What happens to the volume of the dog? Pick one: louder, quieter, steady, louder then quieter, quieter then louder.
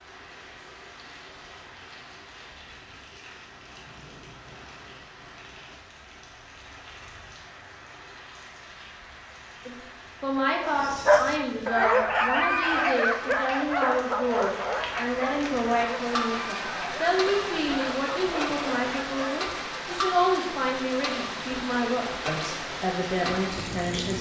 quieter.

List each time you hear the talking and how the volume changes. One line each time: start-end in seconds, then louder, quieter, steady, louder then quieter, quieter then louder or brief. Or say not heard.
9.7-24.1 steady.